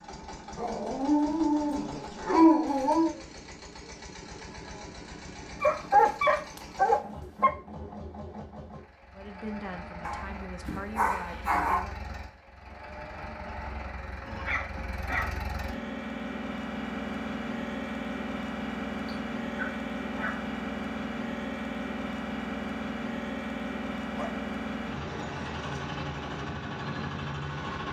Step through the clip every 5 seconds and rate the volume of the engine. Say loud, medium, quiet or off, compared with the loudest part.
medium, medium, medium, loud, loud, loud.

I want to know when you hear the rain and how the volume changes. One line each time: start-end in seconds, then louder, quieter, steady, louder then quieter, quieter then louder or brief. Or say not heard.
not heard.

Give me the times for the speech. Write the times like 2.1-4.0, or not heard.
9.2-11.9.